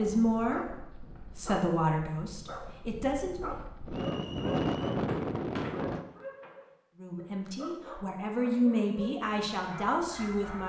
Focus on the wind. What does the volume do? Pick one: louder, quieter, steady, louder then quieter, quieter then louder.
louder.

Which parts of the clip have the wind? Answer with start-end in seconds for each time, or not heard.
0.0-6.0.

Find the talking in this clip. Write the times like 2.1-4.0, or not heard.
0.0-3.5, 7.0-10.6.